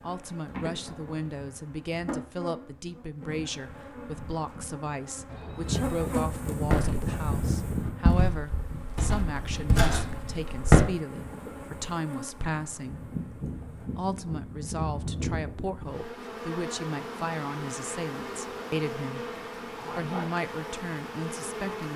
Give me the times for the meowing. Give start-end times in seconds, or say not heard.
not heard.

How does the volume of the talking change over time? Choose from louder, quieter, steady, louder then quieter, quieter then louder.
steady.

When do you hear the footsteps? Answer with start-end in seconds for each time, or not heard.
6.6-10.8.